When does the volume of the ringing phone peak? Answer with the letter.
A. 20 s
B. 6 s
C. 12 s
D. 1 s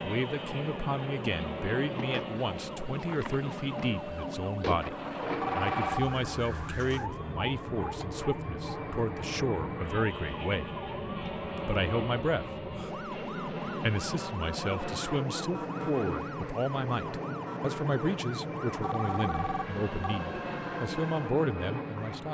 B.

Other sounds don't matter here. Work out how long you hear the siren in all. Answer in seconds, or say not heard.
22 s.